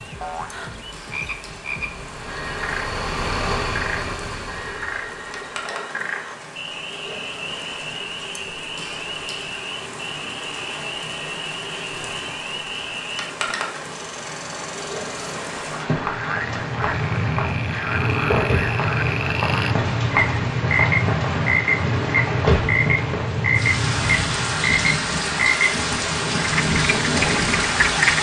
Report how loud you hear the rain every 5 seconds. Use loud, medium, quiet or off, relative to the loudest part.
quiet, quiet, medium, medium, loud, loud.